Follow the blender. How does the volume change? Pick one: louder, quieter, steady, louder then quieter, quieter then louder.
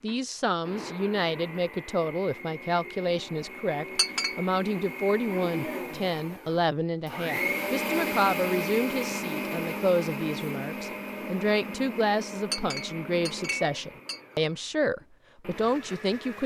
louder then quieter.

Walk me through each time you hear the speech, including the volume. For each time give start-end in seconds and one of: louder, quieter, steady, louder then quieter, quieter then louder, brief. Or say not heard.
0.0-16.4 steady.